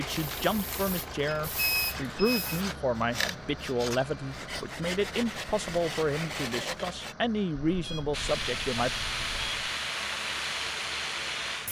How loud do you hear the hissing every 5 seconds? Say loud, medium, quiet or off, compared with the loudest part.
medium, loud, loud.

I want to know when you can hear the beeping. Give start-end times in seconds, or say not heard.
1.2-2.6, 7.7-9.7.